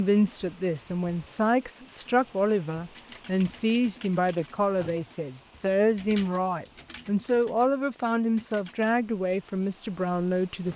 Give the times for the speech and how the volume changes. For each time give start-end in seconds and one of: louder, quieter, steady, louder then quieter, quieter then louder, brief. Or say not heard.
0.0-10.7 steady.